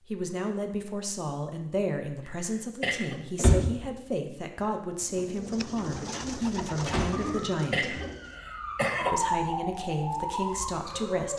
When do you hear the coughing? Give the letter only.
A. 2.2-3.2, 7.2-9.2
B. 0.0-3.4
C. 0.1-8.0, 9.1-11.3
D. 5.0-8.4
A.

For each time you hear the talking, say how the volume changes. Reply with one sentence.
The talking can be heard from 0.1 to 8.0 s, at a steady volume; and briefly from 9.1 to 11.3 s.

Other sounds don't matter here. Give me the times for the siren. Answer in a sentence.
The siren can be heard from 7.1 to 11.3 s.